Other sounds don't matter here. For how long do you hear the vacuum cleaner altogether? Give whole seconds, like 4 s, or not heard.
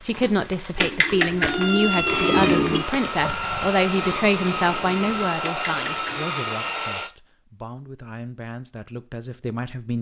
5 s.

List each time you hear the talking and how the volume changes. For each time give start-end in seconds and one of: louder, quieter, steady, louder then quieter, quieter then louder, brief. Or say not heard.
0.1-9.9 quieter.